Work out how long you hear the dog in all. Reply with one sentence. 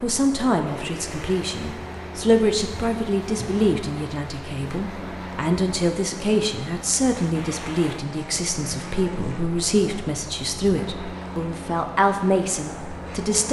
You can't hear the dog here.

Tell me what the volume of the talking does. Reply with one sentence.
The loudness of the talking stays about the same.